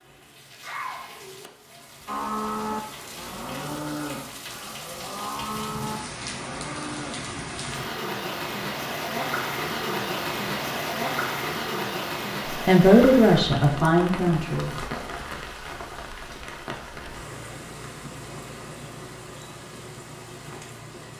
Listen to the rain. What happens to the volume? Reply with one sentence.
The loudness of the rain goes up, then down.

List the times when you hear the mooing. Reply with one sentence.
You can hear the mooing from 2.0 to 7.2 s.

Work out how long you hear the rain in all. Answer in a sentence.
The rain can be heard for 21 seconds in total.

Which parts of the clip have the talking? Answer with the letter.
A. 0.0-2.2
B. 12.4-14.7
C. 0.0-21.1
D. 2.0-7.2
B.